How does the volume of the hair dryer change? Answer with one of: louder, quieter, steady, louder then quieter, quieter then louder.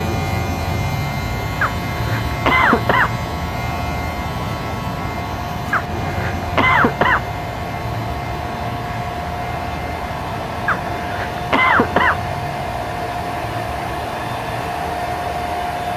louder.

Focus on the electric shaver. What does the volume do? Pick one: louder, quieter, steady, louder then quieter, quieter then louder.
quieter.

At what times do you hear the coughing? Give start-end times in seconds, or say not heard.
1.6-3.1, 5.7-7.2, 10.7-12.2.